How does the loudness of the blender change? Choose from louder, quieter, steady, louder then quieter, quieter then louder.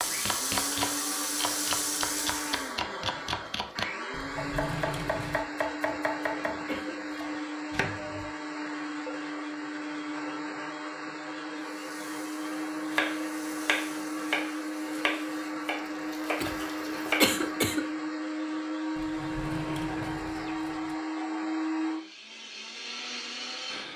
steady.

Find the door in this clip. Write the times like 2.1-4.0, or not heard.
4.1-5.5, 18.9-20.9.